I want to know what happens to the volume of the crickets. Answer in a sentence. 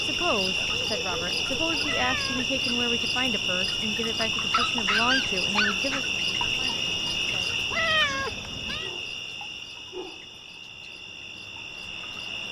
The loudness of the crickets goes down.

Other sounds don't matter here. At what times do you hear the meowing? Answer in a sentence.
You can hear the meowing from 1.8 to 2.5 s and from 7.7 to 8.9 s.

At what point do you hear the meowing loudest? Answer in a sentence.
The loudest moment of the meowing is at 8 seconds.